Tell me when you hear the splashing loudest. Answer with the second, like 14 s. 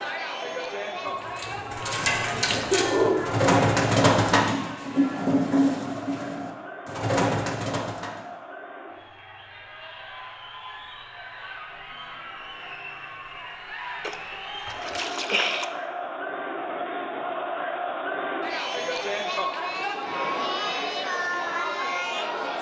15 s.